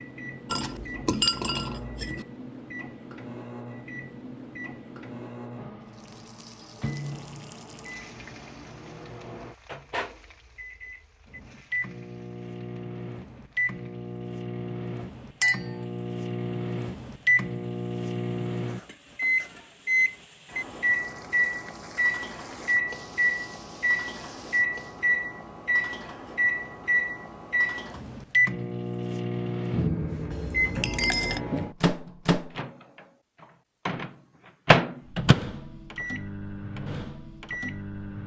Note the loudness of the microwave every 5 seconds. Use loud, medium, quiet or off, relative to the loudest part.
quiet, quiet, medium, loud, loud, loud, loud, medium.